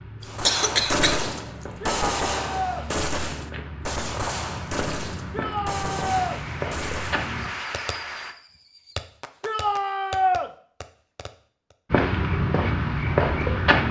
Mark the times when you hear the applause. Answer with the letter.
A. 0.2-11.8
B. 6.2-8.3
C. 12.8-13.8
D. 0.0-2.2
B.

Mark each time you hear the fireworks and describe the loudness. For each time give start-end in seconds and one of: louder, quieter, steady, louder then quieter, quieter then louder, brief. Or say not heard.
0.2-11.8 quieter.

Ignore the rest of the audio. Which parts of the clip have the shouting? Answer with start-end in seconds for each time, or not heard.
1.8-2.9, 5.3-6.4, 9.4-10.5.